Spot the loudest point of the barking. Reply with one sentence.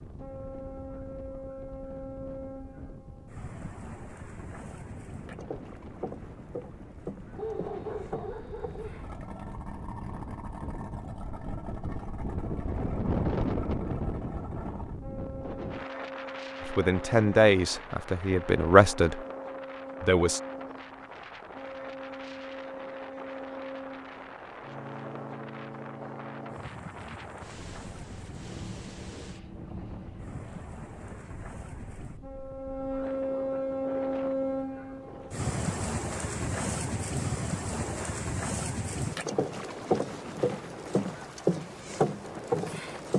The loudest moment of the barking is at 8 seconds.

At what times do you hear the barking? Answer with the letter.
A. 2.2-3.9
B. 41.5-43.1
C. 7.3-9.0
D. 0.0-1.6
C.